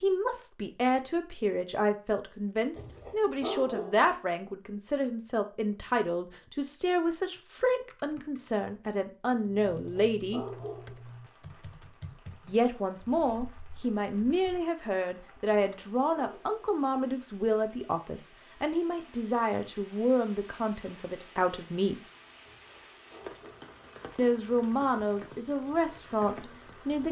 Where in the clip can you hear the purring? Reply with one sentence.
You can't hear the purring here.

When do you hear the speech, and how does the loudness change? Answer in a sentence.
The speech can be heard from 0.0 to 10.4 s, at a steady volume; from 12.4 to 22.0 s, at a steady volume; and briefly from 24.1 to 27.0 s.